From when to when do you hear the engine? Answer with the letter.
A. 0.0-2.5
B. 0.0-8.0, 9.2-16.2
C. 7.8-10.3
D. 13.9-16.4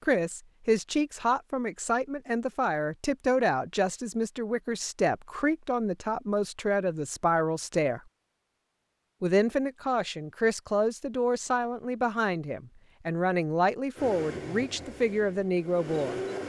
D.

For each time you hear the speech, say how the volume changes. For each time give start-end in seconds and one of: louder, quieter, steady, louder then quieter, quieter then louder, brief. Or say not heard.
0.0-8.0 steady
9.2-16.2 steady.